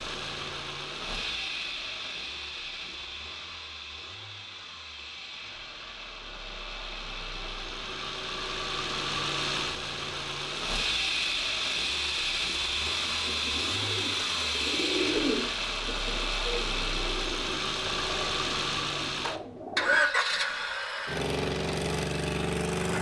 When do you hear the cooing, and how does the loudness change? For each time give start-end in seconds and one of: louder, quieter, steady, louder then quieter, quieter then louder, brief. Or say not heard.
12.9-20.0 louder then quieter.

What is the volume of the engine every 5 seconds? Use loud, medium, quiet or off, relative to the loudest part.
medium, medium, loud, loud, loud.